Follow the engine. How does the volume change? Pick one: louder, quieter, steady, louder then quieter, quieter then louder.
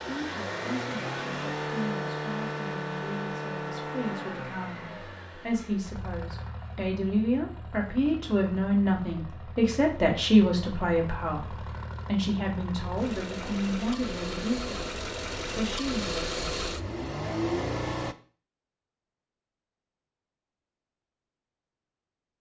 quieter then louder.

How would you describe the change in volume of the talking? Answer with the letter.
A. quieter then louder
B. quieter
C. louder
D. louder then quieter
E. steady
D.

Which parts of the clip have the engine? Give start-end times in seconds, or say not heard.
0.0-18.1.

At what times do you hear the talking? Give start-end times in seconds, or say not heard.
0.1-16.4.